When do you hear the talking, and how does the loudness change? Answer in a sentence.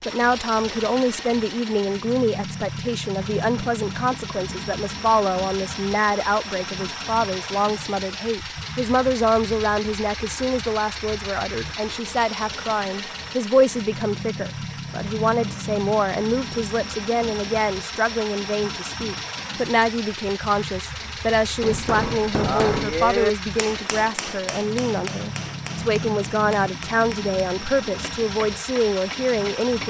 You can hear the talking from 0.1 to 29.8 s, at a steady volume.